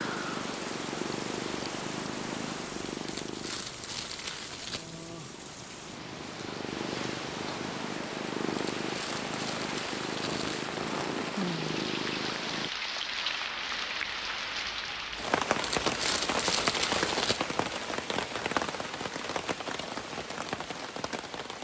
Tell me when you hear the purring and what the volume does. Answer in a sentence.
You can hear the purring from 0.0 to 12.7 s, getting quieter then louder.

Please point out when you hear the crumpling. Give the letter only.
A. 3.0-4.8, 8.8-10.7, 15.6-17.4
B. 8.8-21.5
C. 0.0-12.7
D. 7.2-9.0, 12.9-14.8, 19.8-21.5
A.